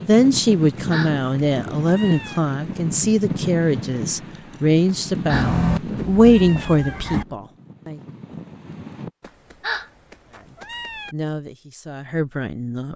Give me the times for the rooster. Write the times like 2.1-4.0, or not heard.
5.3-7.2.